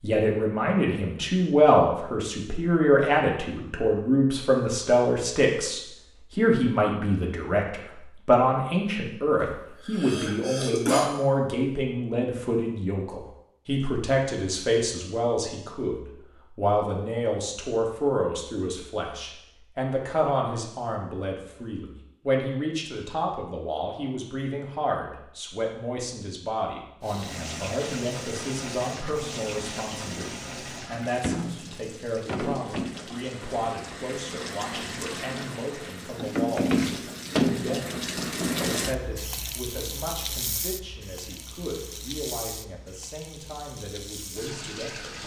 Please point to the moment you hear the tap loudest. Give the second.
37 s.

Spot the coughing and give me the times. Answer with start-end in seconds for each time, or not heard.
9.4-11.1.